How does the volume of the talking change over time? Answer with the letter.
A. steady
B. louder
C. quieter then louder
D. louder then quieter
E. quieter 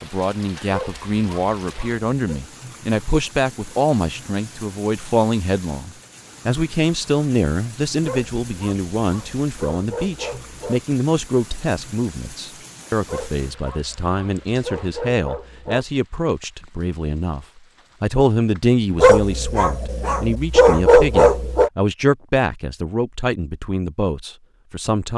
A.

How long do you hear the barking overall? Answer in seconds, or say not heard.
10 s.